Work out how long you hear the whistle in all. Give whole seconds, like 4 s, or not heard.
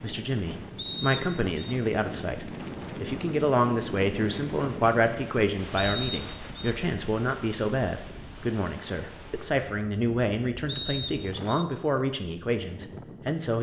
3 s.